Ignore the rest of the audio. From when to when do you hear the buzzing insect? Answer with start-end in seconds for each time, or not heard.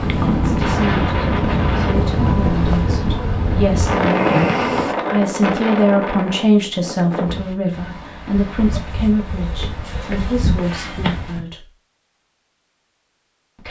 0.0-5.0.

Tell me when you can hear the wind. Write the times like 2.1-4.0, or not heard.
0.0-11.4.